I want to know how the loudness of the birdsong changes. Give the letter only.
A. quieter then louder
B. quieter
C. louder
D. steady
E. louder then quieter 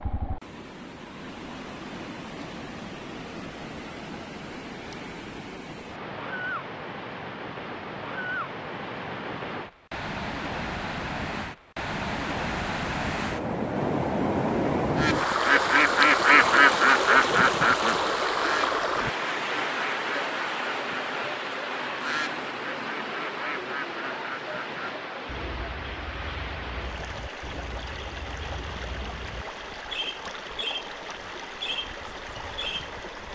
A.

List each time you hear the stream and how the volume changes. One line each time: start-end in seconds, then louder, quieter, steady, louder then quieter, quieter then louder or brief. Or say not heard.
0.0-33.2 louder then quieter.